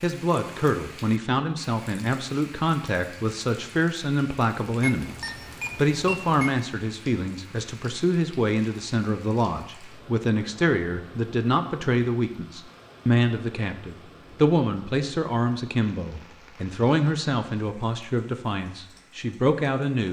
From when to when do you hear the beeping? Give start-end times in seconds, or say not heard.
4.8-6.5.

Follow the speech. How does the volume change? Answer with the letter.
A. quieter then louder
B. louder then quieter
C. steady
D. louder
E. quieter
C.